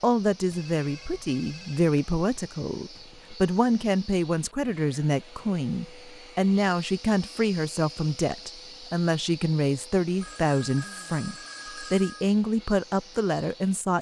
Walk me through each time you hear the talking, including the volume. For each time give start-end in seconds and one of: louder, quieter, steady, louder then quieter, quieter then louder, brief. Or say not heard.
0.0-13.9 steady.